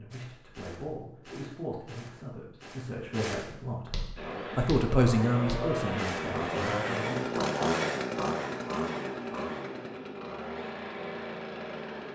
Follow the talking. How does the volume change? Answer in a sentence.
The loudness of the talking goes up, then down.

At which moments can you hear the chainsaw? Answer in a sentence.
The chainsaw can be heard from 4.2 to 12.1 s.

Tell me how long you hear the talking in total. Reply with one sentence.
You can hear the talking for 7 seconds altogether.